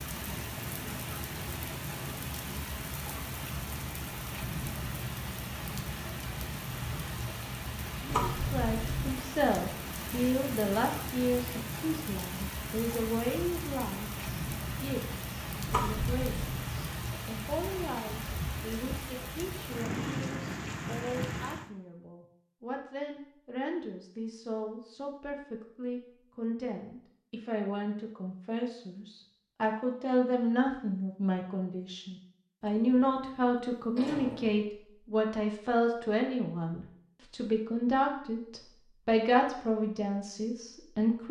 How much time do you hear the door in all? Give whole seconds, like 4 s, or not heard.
4 s.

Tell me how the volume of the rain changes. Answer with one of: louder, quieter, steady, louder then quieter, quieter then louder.
steady.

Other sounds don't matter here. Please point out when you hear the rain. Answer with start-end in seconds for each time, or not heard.
0.0-21.7.